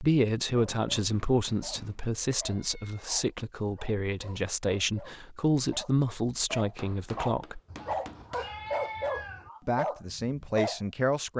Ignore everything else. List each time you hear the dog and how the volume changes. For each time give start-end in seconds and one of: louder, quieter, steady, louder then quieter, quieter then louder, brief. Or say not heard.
0.7-10.8 louder.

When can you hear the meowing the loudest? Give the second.
9 s.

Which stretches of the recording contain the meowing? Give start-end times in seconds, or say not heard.
2.5-3.0, 7.7-9.5.